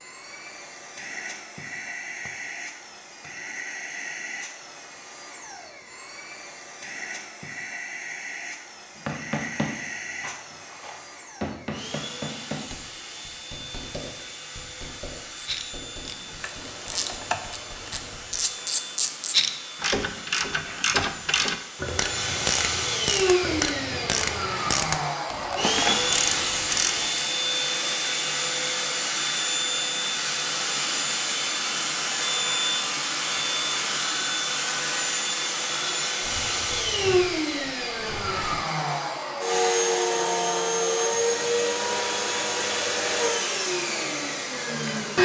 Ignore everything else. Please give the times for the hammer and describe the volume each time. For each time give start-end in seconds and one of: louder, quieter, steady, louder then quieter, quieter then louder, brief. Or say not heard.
9.0-18.4 quieter.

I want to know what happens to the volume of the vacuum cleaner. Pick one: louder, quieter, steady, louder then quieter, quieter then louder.
louder.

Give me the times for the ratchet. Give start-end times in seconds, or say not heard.
15.3-27.1.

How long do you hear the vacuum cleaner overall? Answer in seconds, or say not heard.
45 s.